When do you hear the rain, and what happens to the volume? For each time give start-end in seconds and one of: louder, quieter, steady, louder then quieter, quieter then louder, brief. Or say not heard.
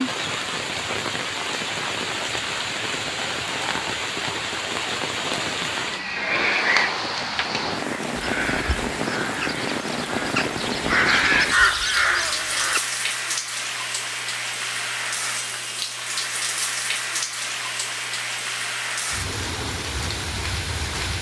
0.0-21.1 steady.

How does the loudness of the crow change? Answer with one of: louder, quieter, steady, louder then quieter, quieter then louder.
louder.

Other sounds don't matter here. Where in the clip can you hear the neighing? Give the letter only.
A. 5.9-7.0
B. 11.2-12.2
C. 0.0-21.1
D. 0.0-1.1
A.